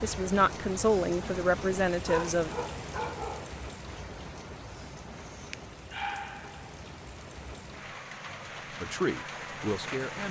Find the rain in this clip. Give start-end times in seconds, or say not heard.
0.0-10.2.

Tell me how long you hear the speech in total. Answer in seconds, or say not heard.
4 s.